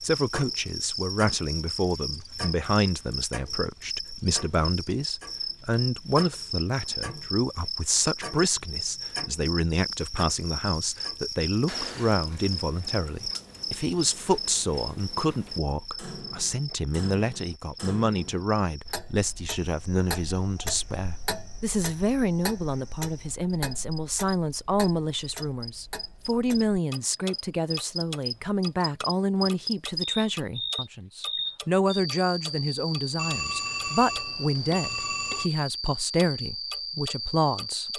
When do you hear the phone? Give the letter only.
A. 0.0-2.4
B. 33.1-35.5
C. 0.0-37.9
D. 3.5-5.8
B.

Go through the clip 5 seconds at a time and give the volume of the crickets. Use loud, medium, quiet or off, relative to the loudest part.
loud, loud, loud, medium, quiet, loud, loud, loud.